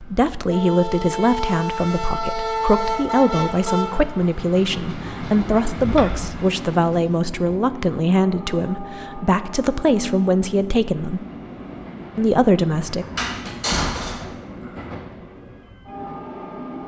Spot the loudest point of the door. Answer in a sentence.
The loudest moment of the door is at 14 seconds.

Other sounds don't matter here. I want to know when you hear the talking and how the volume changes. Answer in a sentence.
You can hear the talking from 0.0 to 11.2 s, at a steady volume; and briefly from 12.2 to 13.1 s.